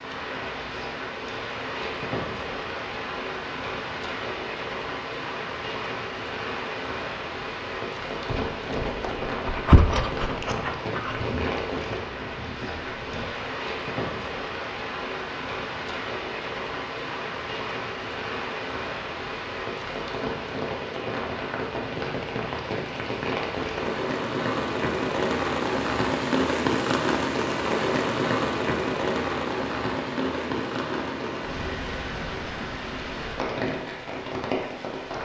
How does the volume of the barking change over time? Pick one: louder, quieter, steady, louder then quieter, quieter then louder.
louder then quieter.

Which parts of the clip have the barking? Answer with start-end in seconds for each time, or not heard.
8.2-13.4.